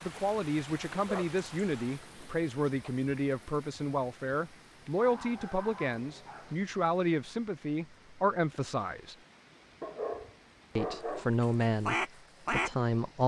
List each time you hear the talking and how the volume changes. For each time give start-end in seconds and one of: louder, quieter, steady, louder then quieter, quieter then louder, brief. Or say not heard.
0.0-9.2 steady
10.8-13.2 brief.